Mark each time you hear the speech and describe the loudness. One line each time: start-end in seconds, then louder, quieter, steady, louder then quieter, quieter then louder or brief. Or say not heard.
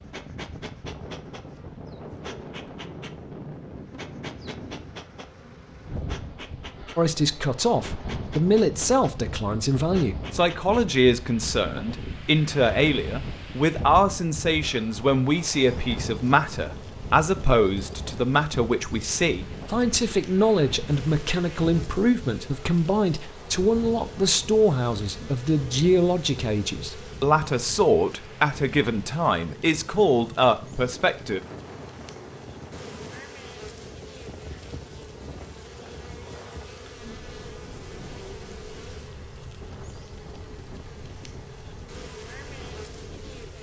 7.0-31.4 steady.